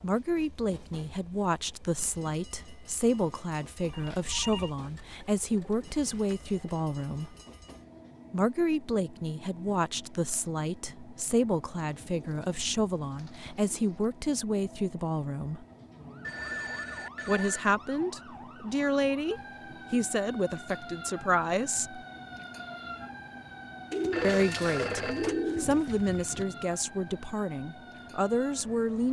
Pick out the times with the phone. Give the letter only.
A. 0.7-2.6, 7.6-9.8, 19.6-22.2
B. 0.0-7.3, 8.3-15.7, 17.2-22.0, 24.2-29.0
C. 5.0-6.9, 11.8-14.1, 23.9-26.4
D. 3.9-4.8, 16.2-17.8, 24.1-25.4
D.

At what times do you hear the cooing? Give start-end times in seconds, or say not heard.
5.0-6.9, 11.8-14.1, 23.9-26.4.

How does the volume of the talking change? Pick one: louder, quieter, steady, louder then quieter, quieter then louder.
steady.